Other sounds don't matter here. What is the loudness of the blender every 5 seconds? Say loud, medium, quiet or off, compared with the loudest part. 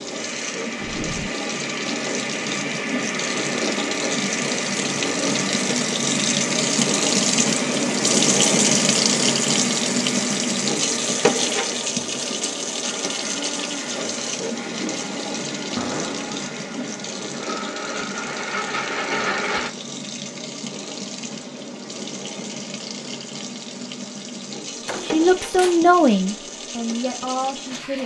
loud, loud, medium, loud, off, off.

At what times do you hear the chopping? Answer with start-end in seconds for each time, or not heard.
not heard.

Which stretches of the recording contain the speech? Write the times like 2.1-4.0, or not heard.
25.1-28.0.